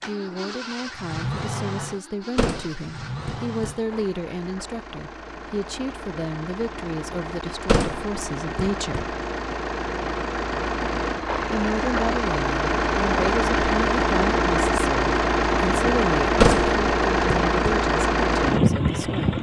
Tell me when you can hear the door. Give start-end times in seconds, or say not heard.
2.4-3.8, 7.7-9.1, 16.4-17.8.